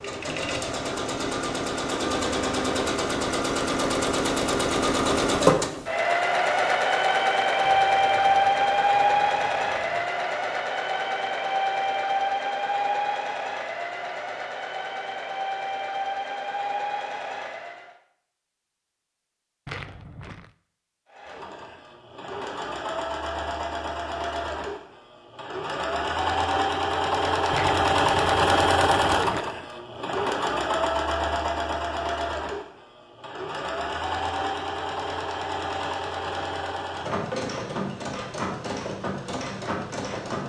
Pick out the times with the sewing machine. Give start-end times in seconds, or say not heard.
0.0-17.9, 21.1-40.4.